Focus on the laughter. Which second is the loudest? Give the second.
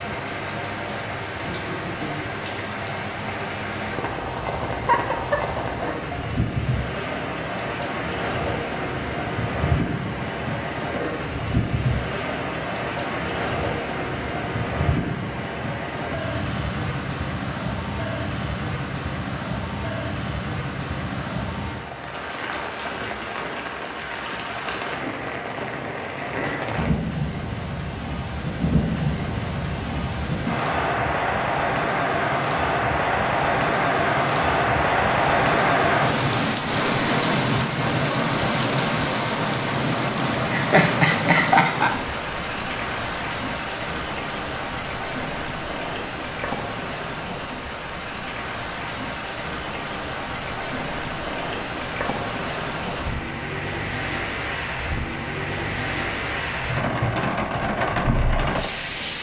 41 s.